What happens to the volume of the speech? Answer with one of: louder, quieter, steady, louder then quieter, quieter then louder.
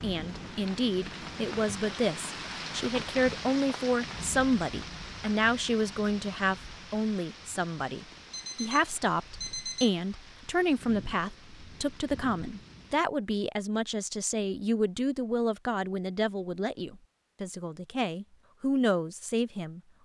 steady.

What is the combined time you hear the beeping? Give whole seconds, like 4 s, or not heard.
2 s.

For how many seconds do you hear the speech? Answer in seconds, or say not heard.
20 s.